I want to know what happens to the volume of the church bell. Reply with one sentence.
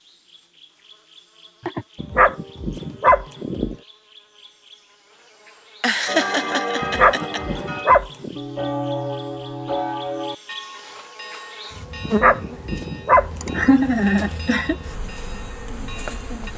The loudness of the church bell goes down.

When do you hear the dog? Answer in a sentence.
You can hear the dog from 2.0 to 3.8 s, from 6.8 to 8.3 s and from 12.1 to 13.7 s.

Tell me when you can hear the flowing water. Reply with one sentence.
You can't hear the flowing water here.